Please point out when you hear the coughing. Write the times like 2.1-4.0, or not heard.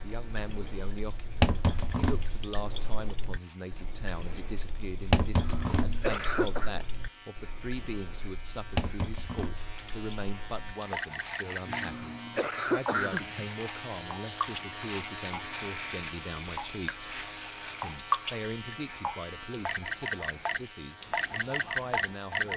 5.3-6.7, 11.7-13.4.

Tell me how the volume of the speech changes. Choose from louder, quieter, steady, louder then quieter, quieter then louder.
steady.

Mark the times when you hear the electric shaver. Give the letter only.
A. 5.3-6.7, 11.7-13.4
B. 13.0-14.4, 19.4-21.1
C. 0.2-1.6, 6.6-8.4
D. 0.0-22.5
D.